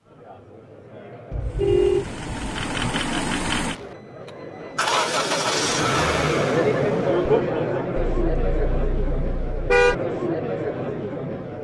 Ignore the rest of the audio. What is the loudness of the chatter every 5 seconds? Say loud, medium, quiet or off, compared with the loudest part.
quiet, loud, loud.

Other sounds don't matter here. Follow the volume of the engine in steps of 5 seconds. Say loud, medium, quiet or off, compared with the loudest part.
loud, loud, off.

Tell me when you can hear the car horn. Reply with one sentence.
You can hear the car horn from 1.3 to 3.0 s and from 8.0 to 9.9 s.